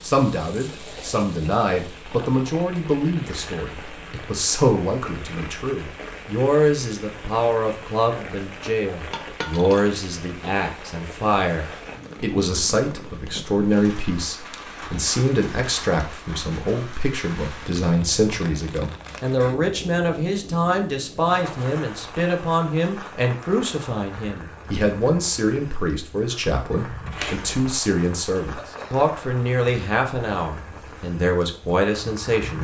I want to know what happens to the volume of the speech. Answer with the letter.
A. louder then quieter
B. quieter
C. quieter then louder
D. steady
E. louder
D.